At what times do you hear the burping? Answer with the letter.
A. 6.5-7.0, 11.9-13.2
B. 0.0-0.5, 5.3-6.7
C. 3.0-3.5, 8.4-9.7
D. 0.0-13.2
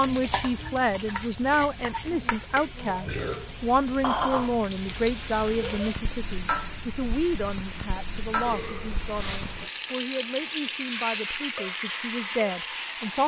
C.